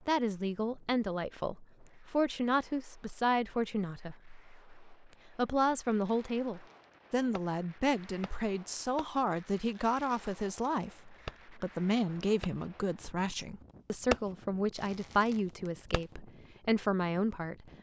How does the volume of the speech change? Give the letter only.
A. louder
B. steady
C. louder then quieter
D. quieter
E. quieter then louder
B.